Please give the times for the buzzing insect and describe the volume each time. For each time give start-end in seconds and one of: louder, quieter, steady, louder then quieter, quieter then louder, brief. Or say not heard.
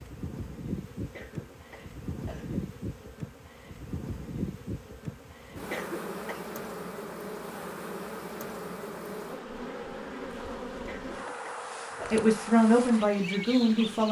0.0-14.0 steady.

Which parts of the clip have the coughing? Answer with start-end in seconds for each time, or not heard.
1.0-2.6, 5.5-6.4, 10.7-12.2.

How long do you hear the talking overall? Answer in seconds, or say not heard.
2 s.